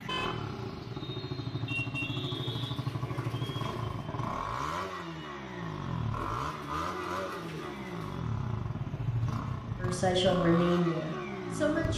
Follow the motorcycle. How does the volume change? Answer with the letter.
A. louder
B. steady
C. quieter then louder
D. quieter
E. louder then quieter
B.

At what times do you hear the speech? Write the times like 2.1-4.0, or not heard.
9.8-11.9.